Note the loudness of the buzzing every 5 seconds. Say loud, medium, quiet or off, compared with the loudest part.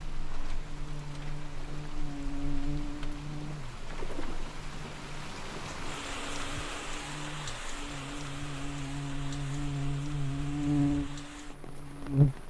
quiet, medium, loud.